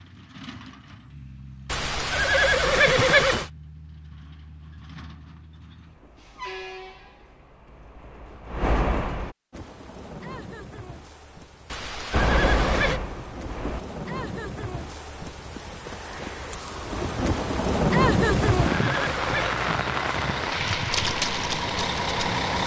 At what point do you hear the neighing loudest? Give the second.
3 s.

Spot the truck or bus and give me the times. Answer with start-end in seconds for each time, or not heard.
0.0-9.3, 12.1-13.8, 18.8-22.6.